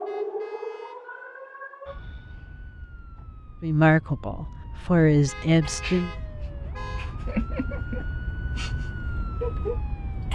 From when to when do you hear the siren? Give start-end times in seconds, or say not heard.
0.0-10.3.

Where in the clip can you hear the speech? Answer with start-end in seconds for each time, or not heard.
3.6-6.1.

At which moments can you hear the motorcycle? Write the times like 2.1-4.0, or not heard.
not heard.